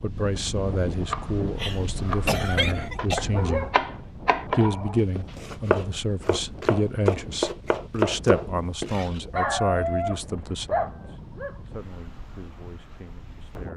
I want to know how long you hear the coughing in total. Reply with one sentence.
You can hear the coughing for 2 seconds altogether.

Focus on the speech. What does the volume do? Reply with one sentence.
The volume of the speech goes down.